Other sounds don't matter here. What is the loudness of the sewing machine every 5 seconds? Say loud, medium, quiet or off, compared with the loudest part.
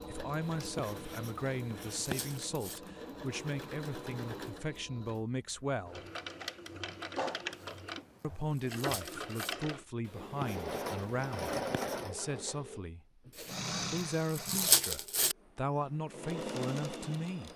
medium, loud, loud, loud.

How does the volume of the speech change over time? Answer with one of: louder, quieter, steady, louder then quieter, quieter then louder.
steady.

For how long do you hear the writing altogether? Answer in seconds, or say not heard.
4 s.